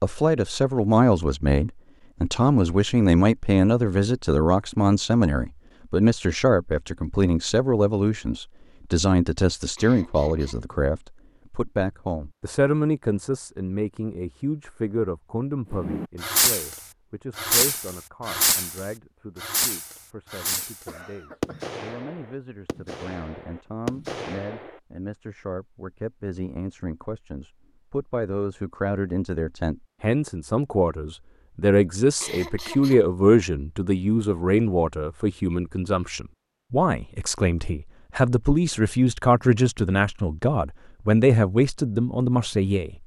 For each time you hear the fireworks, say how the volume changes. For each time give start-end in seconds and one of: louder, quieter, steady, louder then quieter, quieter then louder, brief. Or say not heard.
15.7-24.8 quieter.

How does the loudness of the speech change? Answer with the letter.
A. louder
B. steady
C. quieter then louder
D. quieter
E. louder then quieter
C.